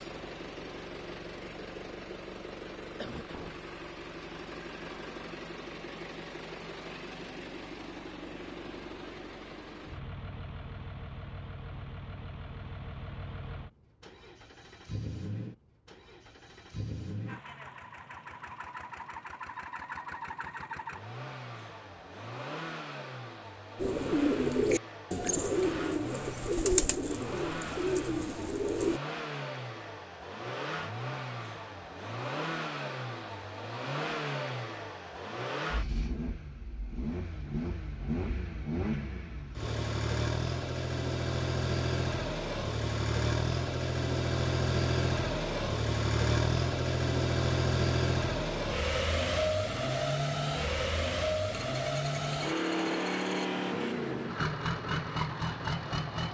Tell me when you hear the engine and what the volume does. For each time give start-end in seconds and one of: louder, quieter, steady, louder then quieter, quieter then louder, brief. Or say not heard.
0.0-56.2 louder.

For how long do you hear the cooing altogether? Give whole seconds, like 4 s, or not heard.
5 s.